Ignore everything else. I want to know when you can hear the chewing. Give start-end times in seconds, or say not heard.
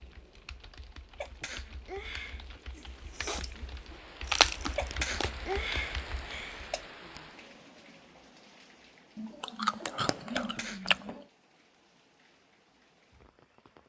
2.8-3.5, 4.2-5.3, 9.2-11.2.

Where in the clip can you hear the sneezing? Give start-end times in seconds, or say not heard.
1.1-2.5, 4.8-6.8, 10.3-10.9.